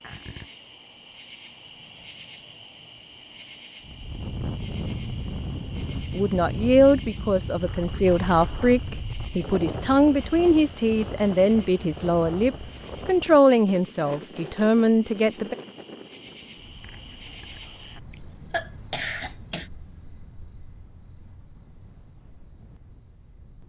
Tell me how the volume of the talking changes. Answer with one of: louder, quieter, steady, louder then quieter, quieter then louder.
steady.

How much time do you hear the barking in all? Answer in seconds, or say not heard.
not heard.